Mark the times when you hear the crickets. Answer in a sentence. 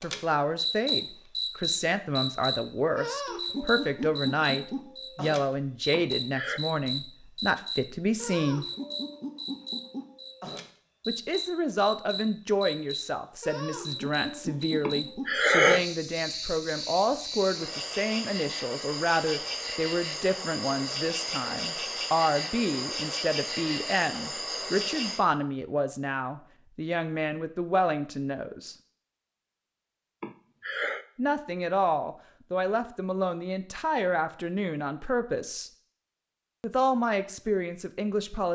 You can hear the crickets from 0.0 to 25.2 s.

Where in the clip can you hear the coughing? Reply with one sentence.
You can hear the coughing from 5.9 to 6.6 s, from 14.8 to 15.8 s and from 30.2 to 31.1 s.